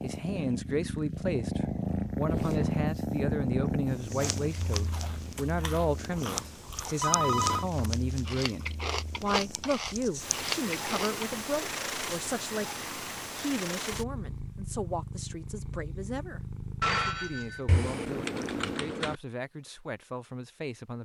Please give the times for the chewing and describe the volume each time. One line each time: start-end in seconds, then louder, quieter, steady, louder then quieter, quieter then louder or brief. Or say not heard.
4.2-11.2 louder.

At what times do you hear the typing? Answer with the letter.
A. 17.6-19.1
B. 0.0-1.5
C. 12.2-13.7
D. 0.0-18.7
A.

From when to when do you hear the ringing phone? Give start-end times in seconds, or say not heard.
7.0-7.7, 16.8-17.6.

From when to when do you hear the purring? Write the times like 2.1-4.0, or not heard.
0.0-18.7.